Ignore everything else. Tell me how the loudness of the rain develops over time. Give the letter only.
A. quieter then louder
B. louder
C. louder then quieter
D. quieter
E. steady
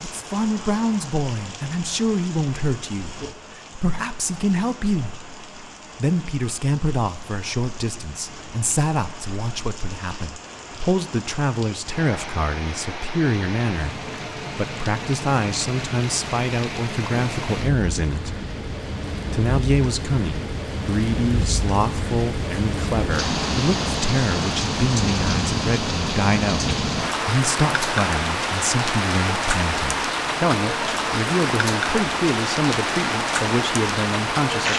B.